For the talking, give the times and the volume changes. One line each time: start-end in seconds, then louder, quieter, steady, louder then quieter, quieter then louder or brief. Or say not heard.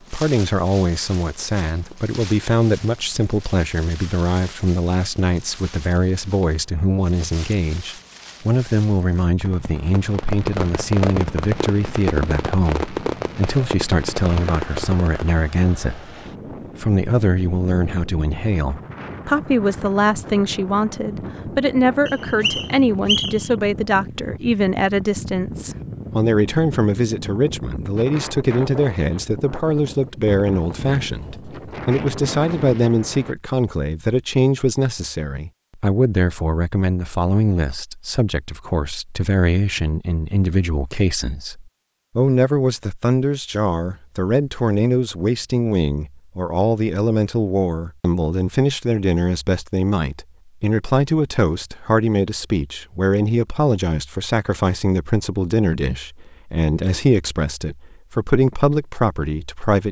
0.1-16.1 steady
16.8-59.8 steady.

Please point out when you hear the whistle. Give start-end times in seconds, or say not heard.
22.1-23.5.